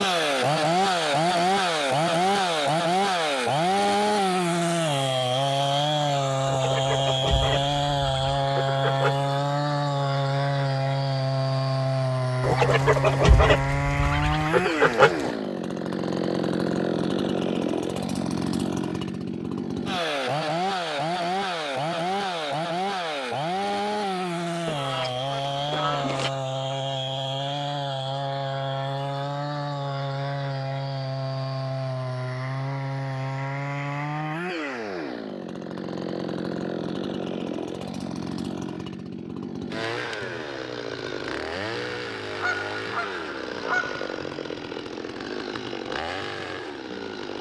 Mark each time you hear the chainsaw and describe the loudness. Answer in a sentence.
The chainsaw can be heard from 0.0 to 47.3 s, getting quieter.